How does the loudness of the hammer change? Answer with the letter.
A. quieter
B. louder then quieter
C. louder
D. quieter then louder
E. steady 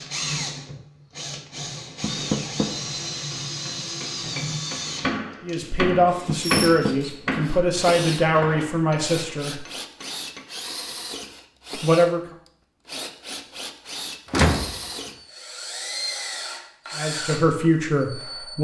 B.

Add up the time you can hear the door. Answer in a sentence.
The door can be heard for 2 seconds in total.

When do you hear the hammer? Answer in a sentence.
The hammer can be heard from 3.3 to 10.4 s.